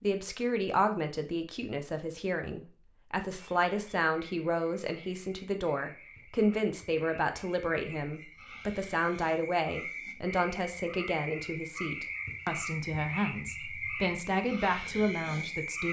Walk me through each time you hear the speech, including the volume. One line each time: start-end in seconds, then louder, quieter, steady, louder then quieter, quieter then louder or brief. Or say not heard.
0.0-15.8 steady.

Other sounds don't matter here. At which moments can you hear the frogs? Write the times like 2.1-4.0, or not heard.
3.3-15.8.